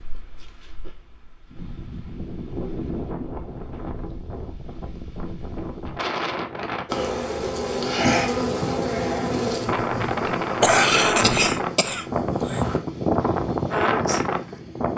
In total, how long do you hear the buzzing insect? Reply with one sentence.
You can hear the buzzing insect for 6 seconds altogether.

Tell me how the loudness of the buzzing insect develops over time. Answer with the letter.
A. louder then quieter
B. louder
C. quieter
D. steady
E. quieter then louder
C.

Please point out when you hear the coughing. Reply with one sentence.
You can hear the coughing from 10.6 to 12.7 s.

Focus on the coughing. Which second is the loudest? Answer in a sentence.
The volume of the coughing peaks at 11 seconds.